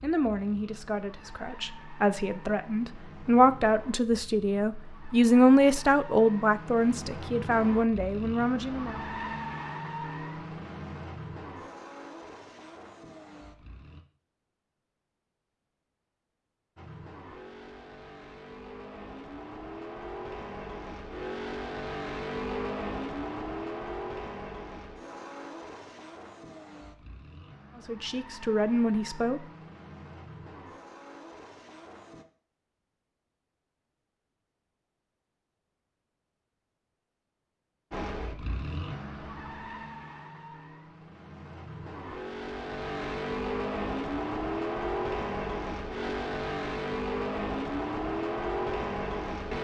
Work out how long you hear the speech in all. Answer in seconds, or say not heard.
11 s.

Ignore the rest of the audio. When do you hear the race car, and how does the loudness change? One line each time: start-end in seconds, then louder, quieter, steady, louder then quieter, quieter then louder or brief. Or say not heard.
0.0-14.1 louder then quieter
16.8-32.2 louder then quieter
37.9-49.5 louder.